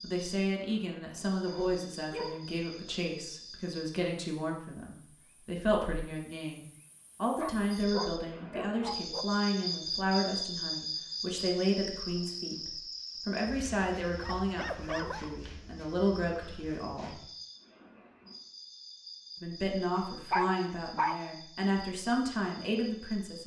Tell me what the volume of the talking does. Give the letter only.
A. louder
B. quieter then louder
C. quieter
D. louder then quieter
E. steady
E.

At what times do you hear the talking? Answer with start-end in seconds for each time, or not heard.
0.0-17.1, 19.4-23.4.